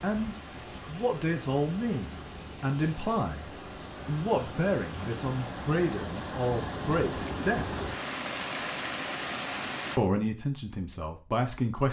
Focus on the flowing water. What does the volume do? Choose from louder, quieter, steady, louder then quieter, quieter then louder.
louder.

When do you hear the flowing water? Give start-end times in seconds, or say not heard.
0.0-10.0.